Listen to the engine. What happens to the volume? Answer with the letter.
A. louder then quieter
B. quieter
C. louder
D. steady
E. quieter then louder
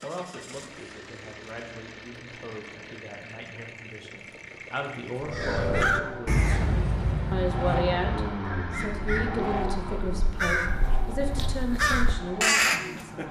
A.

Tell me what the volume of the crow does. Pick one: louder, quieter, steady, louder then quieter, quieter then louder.
quieter then louder.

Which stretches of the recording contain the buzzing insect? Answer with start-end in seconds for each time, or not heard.
not heard.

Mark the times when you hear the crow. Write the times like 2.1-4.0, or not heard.
5.2-13.2.